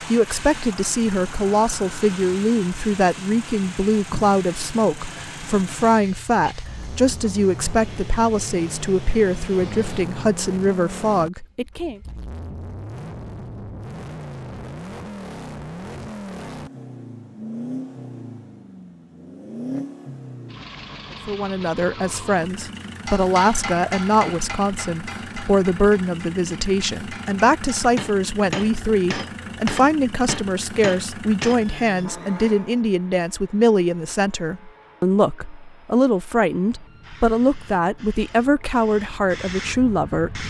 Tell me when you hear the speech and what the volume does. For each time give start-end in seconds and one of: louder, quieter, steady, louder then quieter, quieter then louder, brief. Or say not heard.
0.0-12.0 steady
21.2-40.4 steady.